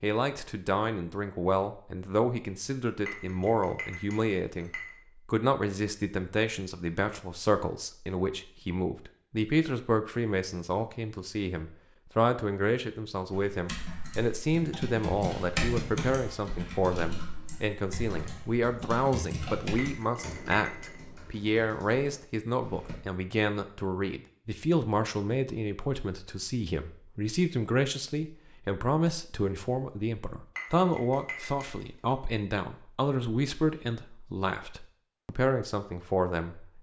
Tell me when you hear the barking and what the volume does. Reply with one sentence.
You can't hear the barking here.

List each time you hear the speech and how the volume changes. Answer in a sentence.
The speech can be heard from 0.0 to 36.7 s, at a steady volume.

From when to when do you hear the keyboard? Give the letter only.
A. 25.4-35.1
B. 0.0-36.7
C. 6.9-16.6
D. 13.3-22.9
D.